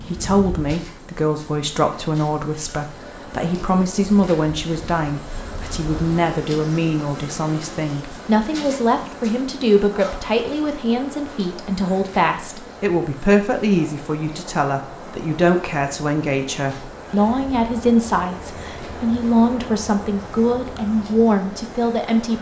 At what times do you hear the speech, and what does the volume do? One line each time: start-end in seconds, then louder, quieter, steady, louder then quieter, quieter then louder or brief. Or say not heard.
0.0-22.3 steady.